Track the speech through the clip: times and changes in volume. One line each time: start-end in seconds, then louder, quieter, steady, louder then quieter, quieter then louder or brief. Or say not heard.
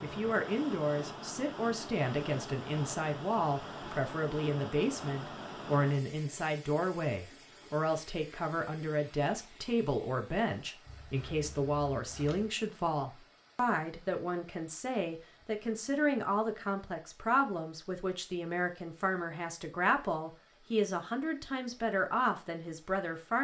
0.0-23.3 steady.